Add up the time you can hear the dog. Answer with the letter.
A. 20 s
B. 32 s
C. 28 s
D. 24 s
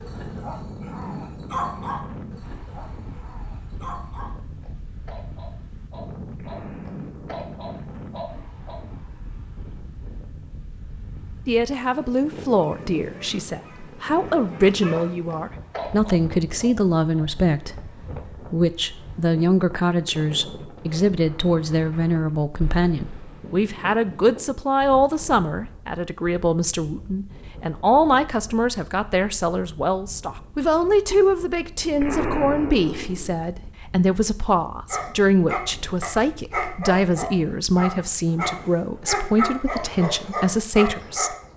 A.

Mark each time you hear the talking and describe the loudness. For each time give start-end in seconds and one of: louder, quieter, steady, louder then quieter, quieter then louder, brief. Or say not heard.
11.4-41.4 steady.